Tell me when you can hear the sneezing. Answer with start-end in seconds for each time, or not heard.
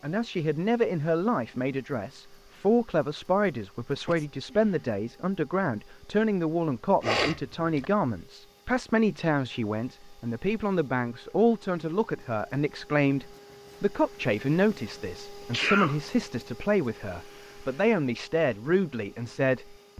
4.0-4.8, 7.0-7.8, 15.5-15.9.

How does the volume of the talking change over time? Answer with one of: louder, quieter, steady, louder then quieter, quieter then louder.
steady.